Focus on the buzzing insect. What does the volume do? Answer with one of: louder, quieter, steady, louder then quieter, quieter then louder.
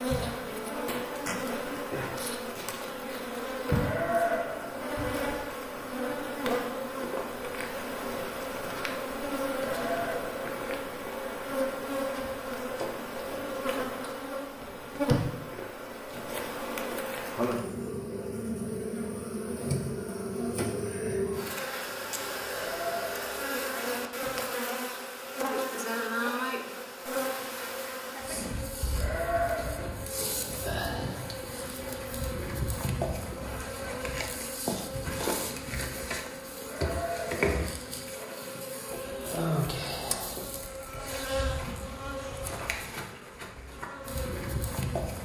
steady.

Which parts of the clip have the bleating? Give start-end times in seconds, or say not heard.
3.8-4.8, 9.6-10.3, 22.5-23.4, 28.9-29.9, 36.6-37.4.